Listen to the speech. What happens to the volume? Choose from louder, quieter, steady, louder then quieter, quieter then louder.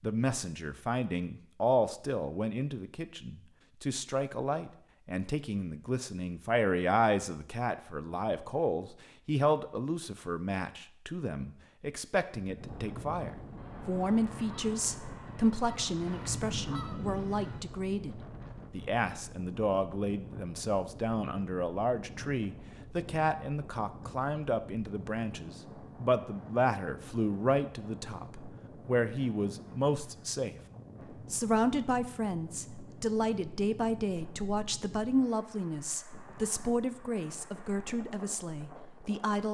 steady.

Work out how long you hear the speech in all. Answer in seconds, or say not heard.
39 s.